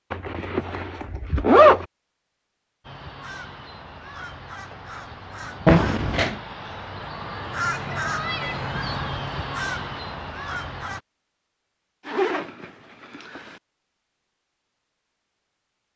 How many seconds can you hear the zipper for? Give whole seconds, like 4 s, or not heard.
4 s.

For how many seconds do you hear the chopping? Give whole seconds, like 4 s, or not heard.
not heard.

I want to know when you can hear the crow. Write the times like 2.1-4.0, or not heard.
2.9-11.0.